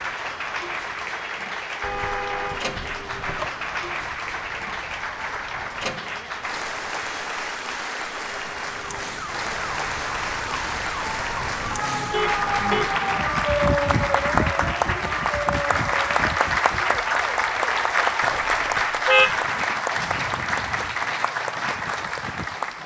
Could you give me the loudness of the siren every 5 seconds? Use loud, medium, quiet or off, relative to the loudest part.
quiet, quiet, loud, medium, quiet.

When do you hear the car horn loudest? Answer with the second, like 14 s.
19 s.